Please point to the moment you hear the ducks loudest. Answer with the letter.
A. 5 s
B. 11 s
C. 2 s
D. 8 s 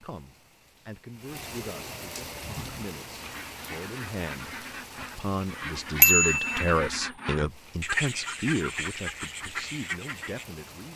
D.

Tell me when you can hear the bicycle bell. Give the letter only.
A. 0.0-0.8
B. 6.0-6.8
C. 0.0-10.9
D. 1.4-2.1
B.